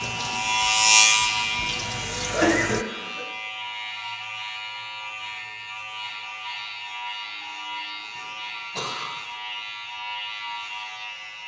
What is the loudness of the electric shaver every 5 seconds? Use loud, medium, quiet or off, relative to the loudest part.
loud, medium, medium.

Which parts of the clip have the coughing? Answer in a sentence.
The coughing can be heard from 2.3 to 3.2 s and from 8.2 to 9.3 s.